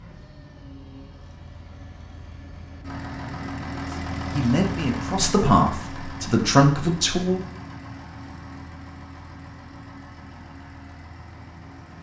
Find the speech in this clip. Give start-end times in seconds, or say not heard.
3.9-7.4.